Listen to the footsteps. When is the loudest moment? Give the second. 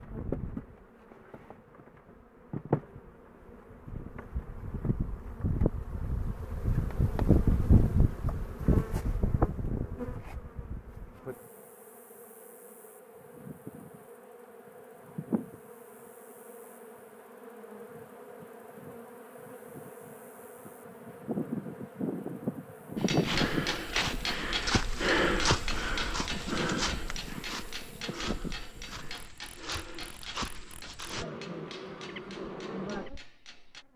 25 s.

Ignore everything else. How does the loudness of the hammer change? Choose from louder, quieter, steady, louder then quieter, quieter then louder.
quieter.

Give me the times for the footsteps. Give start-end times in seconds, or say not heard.
23.1-31.2.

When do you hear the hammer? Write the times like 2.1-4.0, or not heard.
22.9-33.9.